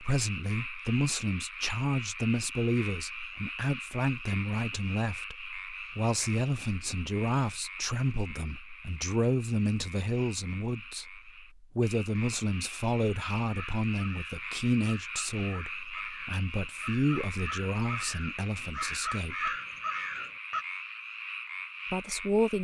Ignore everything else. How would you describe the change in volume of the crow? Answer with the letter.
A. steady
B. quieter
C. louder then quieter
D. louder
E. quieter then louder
D.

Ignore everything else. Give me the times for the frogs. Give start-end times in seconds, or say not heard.
0.0-22.5.